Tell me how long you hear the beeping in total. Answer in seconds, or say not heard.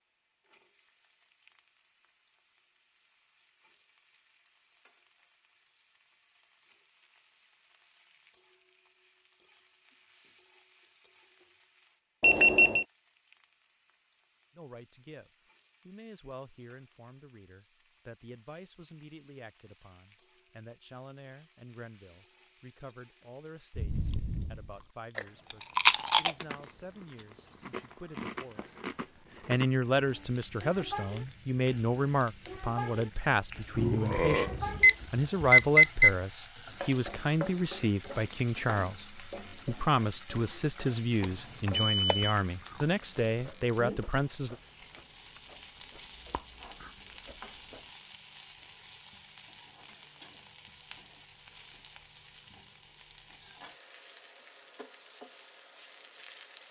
4 s.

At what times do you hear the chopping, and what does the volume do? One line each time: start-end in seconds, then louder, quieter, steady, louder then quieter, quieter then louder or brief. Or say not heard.
not heard.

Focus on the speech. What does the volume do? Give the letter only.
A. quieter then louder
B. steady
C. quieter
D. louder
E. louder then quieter
D.